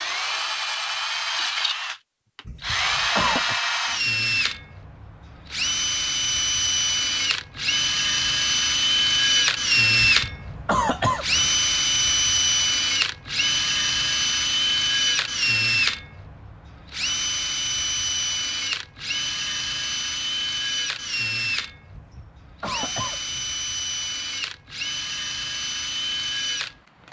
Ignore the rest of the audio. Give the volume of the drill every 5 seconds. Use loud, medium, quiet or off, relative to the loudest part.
loud, loud, loud, loud, medium, medium.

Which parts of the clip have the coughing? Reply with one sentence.
You can hear the coughing from 2.5 to 3.6 s, from 10.0 to 11.6 s and from 21.9 to 23.4 s.